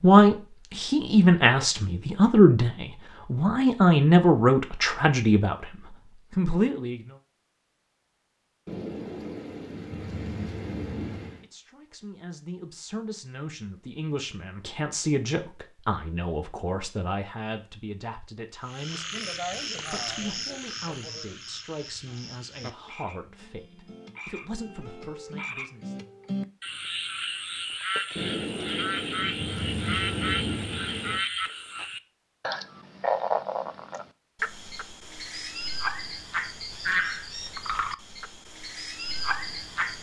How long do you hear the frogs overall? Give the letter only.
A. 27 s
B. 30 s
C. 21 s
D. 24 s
C.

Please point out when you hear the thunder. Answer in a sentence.
The thunder can be heard from 8.7 to 11.4 s and from 28.1 to 31.2 s.